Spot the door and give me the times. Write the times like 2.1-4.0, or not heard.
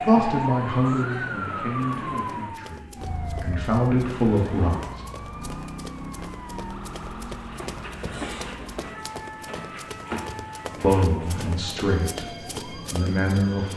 9.4-10.2.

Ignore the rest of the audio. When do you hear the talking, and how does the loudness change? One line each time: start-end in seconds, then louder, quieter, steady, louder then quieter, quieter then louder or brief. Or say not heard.
0.0-5.0 quieter then louder
10.8-13.7 brief.